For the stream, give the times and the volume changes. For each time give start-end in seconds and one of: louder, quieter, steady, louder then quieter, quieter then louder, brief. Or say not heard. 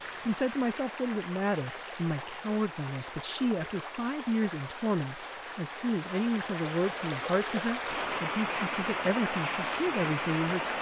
0.0-10.7 louder.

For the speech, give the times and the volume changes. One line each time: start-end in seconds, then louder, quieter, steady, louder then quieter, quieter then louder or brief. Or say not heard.
0.2-10.7 steady.